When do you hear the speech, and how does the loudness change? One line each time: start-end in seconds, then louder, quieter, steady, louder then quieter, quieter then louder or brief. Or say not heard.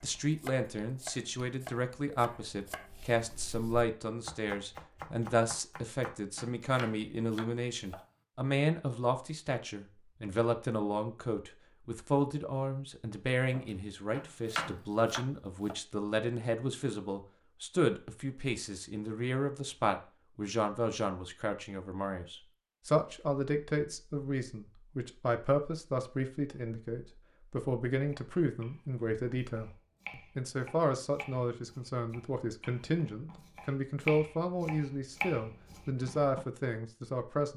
0.0-37.5 steady.